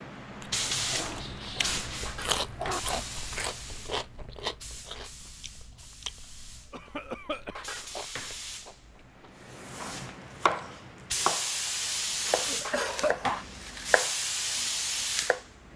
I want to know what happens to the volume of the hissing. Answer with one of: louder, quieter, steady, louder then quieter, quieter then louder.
quieter then louder.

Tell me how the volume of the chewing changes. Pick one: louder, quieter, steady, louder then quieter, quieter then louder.
quieter.